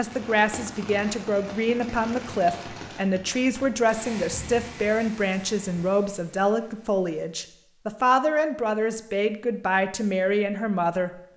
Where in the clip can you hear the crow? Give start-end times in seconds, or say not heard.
not heard.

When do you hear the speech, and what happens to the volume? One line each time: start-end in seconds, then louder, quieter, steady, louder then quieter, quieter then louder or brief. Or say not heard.
0.0-11.1 steady.